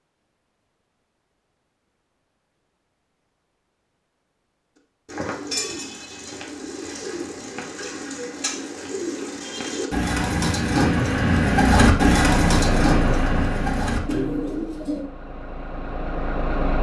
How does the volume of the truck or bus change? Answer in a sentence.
The loudness of the truck or bus goes down, then up.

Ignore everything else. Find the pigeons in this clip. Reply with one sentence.
The pigeons can be heard from 5.0 to 15.1 s.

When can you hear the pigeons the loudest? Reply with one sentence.
The loudest moment of the pigeons is at 12 seconds.